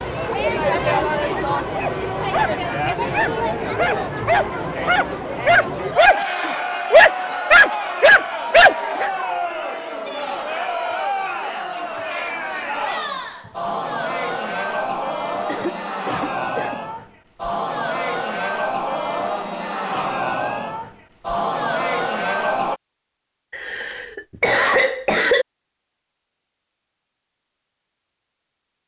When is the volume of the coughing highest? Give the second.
25 s.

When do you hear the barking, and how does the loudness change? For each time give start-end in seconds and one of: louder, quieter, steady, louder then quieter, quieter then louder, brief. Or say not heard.
1.7-9.1 louder.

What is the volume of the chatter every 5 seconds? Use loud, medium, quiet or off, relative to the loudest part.
loud, loud, loud, loud, loud, off.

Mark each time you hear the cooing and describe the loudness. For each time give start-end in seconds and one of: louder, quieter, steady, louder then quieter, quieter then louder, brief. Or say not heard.
not heard.